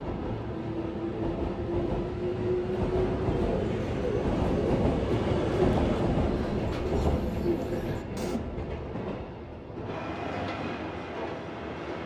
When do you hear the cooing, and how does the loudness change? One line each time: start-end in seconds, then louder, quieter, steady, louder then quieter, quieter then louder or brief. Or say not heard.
3.3-8.4 steady.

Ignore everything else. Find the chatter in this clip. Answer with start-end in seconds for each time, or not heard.
not heard.